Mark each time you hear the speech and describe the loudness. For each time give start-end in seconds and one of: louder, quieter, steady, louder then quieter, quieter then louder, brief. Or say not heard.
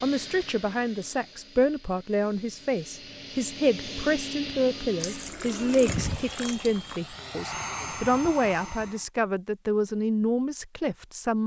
0.0-11.4 steady.